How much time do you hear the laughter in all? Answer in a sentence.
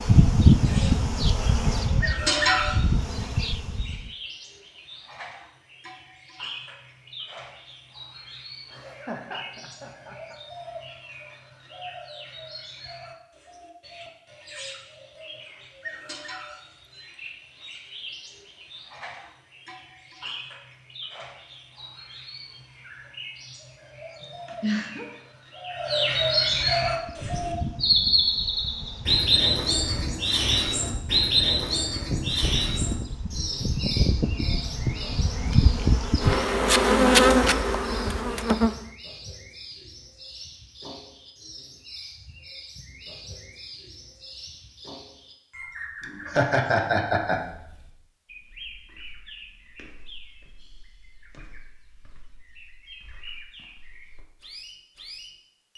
You can hear the laughter for 4 seconds altogether.